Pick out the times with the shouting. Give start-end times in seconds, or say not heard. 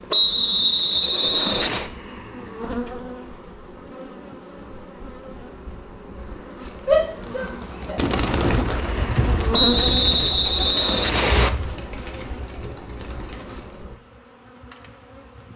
6.8-8.0.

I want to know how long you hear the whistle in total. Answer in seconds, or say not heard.
4 s.